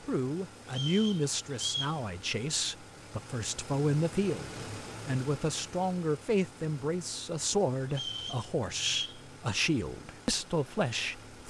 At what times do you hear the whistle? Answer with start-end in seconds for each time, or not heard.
0.7-2.0, 7.9-9.2.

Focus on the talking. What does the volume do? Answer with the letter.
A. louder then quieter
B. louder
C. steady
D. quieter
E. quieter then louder
C.